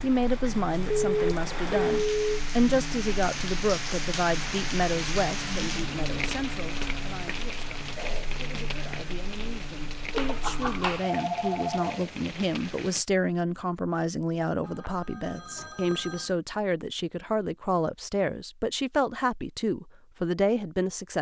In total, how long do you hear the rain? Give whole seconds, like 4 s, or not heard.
13 s.